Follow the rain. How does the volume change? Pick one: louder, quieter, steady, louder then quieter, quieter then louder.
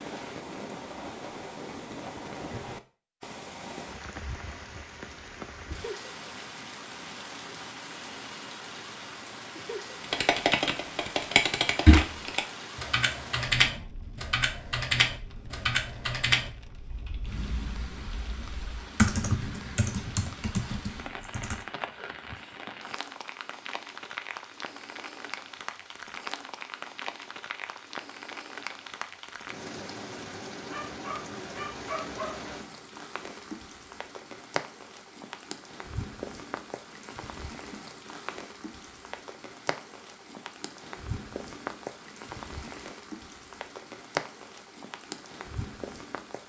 steady.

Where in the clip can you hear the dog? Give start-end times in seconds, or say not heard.
30.7-32.5.